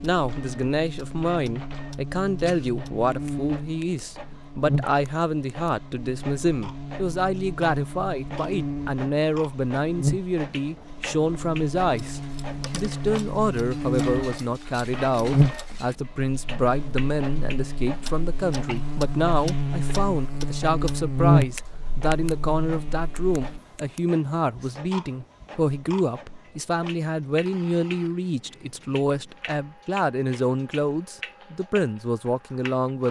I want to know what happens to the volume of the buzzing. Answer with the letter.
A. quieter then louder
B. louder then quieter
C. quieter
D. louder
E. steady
D.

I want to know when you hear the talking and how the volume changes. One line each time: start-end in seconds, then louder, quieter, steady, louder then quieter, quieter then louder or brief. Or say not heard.
0.0-33.0 steady.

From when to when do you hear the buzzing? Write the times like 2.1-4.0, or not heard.
0.0-23.6.